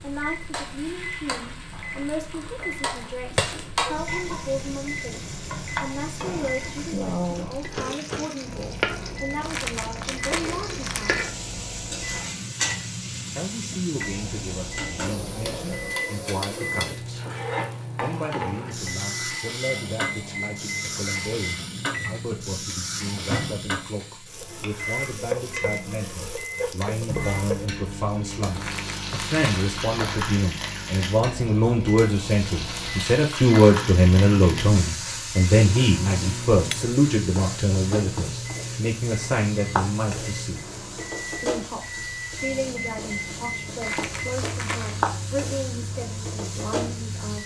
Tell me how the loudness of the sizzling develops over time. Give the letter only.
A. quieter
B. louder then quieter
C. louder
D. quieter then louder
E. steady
E.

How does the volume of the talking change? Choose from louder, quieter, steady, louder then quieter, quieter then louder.
louder then quieter.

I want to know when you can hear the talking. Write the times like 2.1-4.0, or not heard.
0.0-11.2, 13.3-17.3, 17.9-40.7, 41.4-47.4.